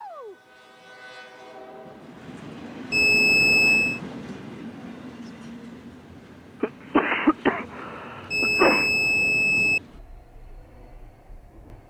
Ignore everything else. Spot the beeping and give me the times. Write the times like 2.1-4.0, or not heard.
2.9-4.0, 8.3-9.8.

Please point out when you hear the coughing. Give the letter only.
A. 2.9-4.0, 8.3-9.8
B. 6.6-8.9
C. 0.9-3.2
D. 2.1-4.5
B.